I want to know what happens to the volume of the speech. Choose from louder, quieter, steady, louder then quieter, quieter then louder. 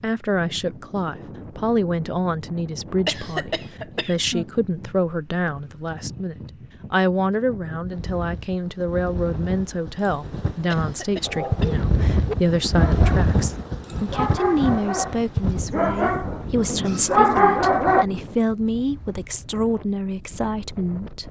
steady.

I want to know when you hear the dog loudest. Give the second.
17 s.